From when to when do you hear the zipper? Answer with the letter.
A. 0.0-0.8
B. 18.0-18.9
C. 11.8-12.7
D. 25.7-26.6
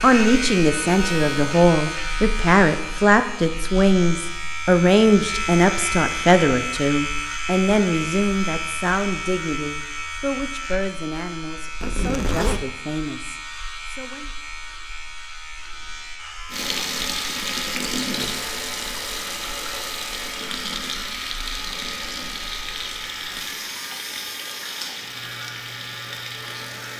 C.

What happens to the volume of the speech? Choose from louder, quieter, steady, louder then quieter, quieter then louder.
quieter.